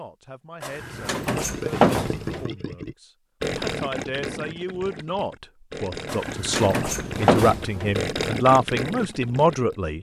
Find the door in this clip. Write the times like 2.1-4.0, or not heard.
0.6-2.5, 6.0-8.1.